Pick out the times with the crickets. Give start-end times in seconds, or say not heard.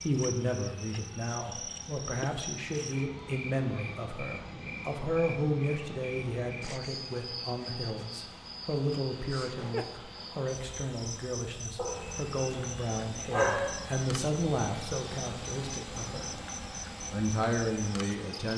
0.0-18.5.